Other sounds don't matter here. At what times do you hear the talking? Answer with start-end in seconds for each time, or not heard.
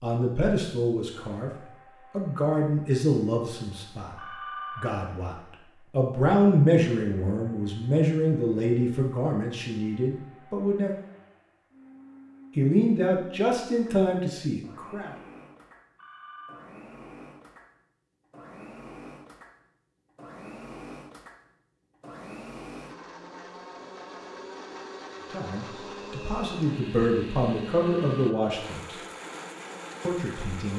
0.0-1.5, 2.1-4.2, 4.8-10.9, 12.6-15.1, 25.3-28.9, 30.1-30.7.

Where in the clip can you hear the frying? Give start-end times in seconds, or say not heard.
not heard.